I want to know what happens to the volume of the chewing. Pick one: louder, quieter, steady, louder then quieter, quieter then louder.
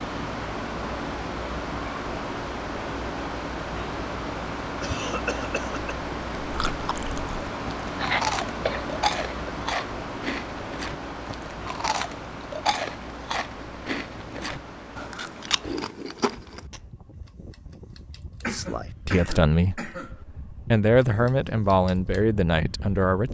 steady.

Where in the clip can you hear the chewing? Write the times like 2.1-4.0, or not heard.
6.4-16.9.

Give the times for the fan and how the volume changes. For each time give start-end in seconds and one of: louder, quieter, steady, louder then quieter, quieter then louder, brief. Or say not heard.
0.0-23.2 quieter.